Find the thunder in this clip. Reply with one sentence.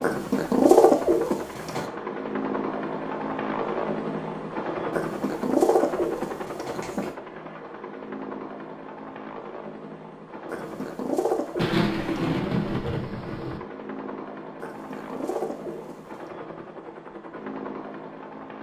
The thunder can be heard from 11.6 to 13.6 s.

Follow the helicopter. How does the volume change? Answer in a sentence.
The volume of the helicopter goes down.